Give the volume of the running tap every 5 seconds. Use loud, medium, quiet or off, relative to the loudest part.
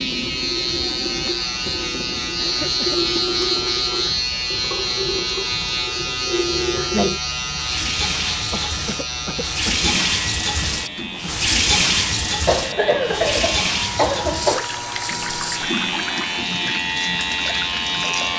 medium, loud, loud, medium.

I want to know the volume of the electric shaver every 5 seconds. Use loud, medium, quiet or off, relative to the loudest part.
loud, loud, medium, loud.